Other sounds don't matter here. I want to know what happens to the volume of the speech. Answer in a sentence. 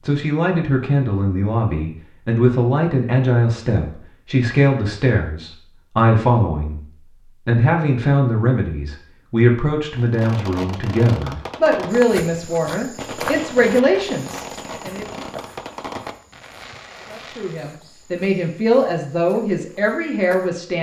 The loudness of the speech stays about the same.